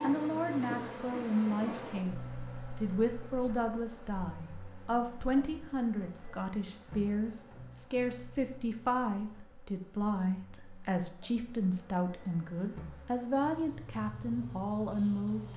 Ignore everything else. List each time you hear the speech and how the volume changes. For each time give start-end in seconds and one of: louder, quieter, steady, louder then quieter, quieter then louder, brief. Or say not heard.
0.0-15.5 steady.